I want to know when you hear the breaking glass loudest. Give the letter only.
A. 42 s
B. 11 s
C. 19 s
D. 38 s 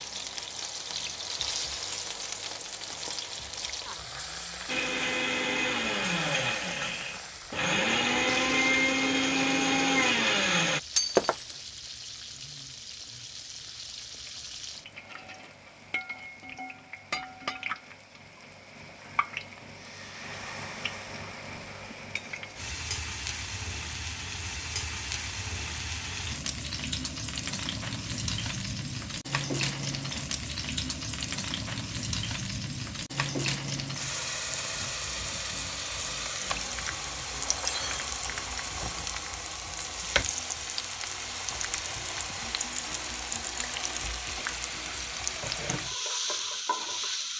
B.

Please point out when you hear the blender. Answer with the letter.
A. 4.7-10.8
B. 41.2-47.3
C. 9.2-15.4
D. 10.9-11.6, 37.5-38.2
A.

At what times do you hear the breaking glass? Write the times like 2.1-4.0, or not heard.
10.9-11.6, 37.5-38.2.